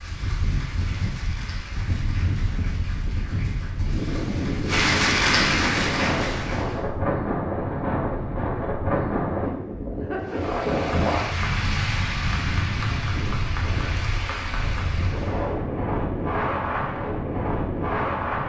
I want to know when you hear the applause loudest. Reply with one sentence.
The loudest moment of the applause is at 5 seconds.